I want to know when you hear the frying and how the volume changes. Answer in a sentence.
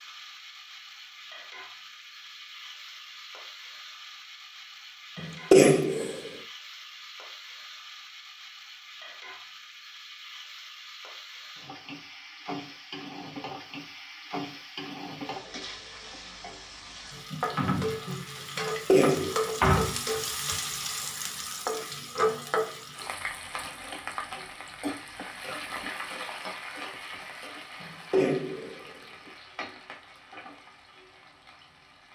You can hear the frying from 0.0 to 32.1 s, getting louder then quieter.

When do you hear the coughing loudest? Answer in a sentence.
The loudest moment of the coughing is at 6 seconds.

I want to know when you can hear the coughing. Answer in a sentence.
The coughing can be heard from 5.2 to 6.3 s, from 18.6 to 19.4 s and from 27.8 to 29.3 s.